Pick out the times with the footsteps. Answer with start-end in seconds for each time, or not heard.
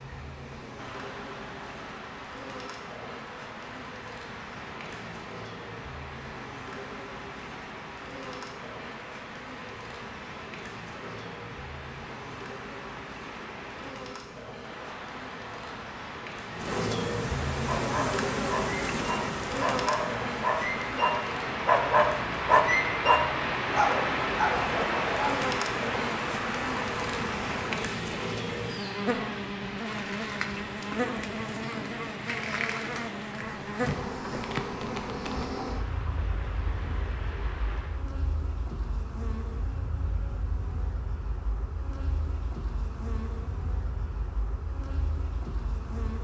not heard.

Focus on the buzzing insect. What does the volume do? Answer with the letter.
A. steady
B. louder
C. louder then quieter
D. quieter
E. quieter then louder
C.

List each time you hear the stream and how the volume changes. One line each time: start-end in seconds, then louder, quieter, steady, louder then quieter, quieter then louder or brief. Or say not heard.
0.0-38.0 louder then quieter.